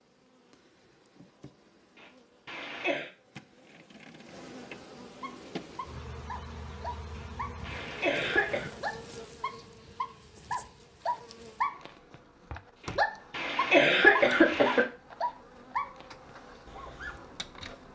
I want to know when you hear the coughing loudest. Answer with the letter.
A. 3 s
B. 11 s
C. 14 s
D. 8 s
C.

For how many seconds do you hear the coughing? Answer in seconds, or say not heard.
5 s.